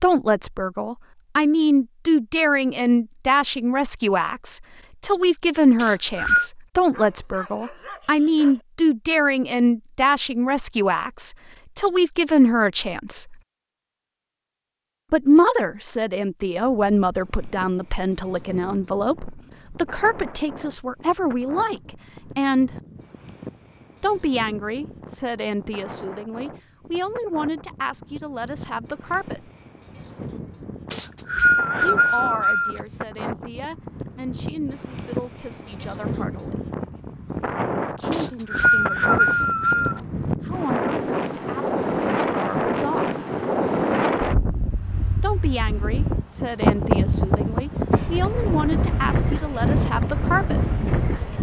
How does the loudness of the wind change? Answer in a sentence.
The loudness of the wind goes up.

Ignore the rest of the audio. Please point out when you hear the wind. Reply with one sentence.
You can hear the wind from 16.6 to 51.3 s.